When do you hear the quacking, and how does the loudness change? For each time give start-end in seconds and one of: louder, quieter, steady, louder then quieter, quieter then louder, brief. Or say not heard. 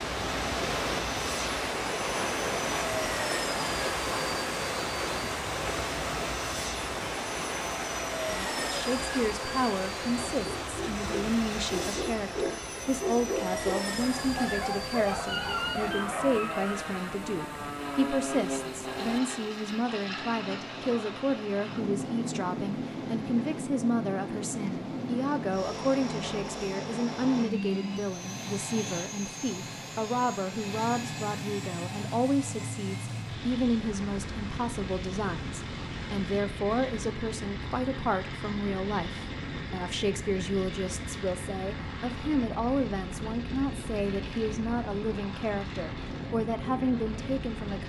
not heard.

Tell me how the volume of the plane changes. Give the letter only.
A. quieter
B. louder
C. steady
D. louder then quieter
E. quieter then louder
C.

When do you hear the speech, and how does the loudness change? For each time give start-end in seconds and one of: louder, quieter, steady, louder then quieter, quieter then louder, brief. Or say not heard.
8.2-47.8 steady.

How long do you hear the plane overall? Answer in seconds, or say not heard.
48 s.